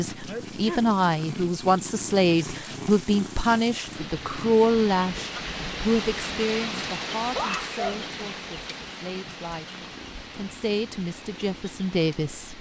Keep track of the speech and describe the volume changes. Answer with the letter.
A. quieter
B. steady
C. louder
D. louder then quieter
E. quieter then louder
E.